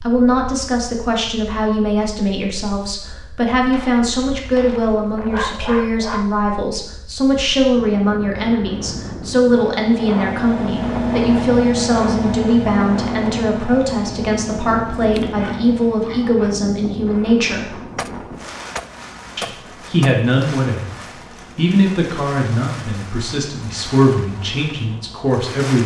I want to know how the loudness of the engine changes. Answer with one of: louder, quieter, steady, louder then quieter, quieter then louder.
quieter.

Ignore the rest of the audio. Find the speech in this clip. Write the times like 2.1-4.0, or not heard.
0.0-17.8, 19.4-20.9, 21.6-25.8.